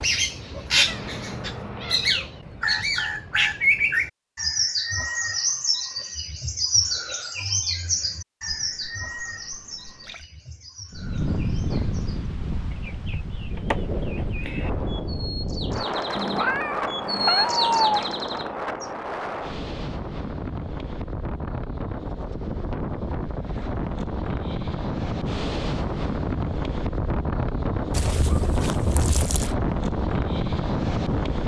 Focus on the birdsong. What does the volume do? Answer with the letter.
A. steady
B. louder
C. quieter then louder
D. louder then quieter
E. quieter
C.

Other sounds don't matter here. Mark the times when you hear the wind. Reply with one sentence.
The wind can be heard from 10.9 to 31.4 s.